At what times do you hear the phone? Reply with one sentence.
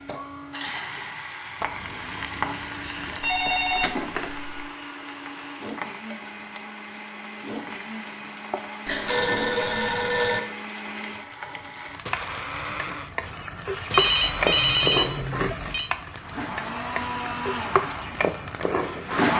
You can hear the phone from 3.2 to 4.5 s, from 8.8 to 10.4 s and from 13.9 to 15.8 s.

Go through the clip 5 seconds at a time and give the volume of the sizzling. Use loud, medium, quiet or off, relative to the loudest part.
medium, medium, loud, loud.